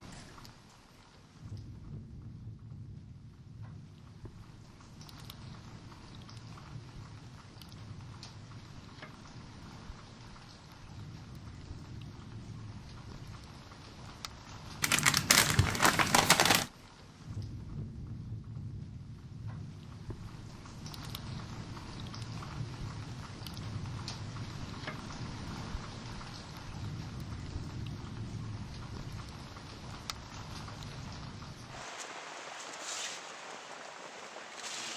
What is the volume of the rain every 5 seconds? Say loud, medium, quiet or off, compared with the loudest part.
medium, medium, medium, loud, loud, loud, loud.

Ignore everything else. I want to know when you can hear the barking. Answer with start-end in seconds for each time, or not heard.
not heard.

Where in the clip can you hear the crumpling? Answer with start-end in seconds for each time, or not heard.
14.8-16.7.